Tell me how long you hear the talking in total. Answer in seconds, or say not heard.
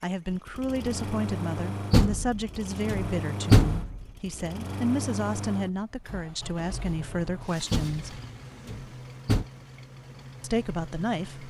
9 s.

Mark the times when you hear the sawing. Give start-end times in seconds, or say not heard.
not heard.